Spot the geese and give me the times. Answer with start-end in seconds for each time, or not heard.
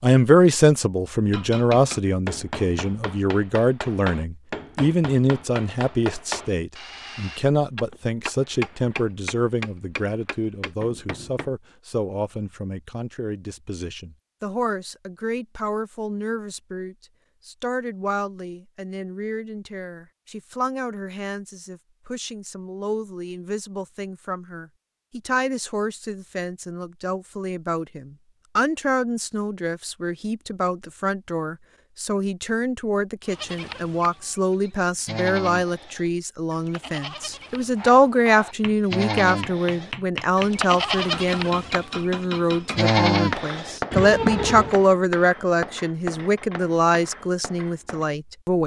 not heard.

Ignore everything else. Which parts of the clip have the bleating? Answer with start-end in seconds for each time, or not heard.
33.2-44.8.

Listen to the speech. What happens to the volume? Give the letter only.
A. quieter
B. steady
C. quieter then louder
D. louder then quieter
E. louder
C.